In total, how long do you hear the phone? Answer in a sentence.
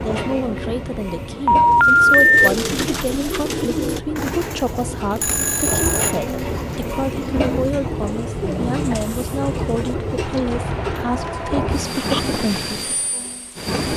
The phone can be heard for 3 seconds in total.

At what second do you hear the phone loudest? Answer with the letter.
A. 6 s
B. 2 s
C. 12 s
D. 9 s
B.